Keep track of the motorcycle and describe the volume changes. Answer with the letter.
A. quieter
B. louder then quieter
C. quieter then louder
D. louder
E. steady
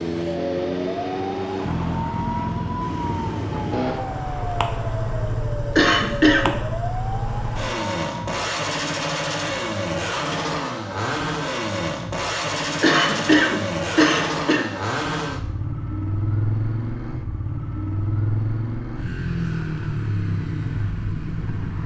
E.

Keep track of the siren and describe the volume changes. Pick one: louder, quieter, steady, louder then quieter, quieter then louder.
steady.